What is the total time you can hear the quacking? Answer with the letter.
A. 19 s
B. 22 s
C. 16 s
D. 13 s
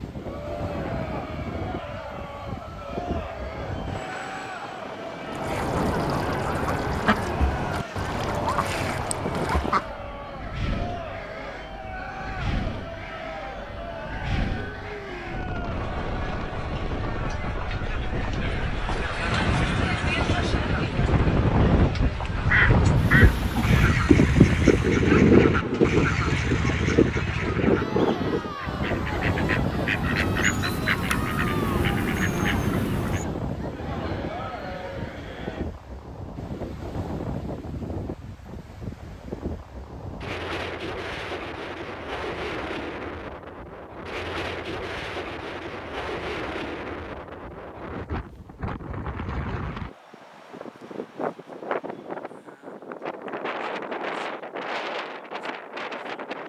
C.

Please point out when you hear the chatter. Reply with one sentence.
The chatter can be heard from 0.1 to 35.7 s.